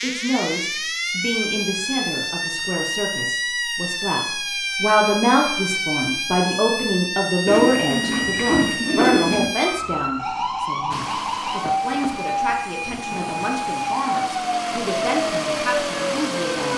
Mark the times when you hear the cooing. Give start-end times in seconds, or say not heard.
7.5-9.5.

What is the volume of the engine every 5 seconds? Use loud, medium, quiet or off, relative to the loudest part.
off, off, medium, loud.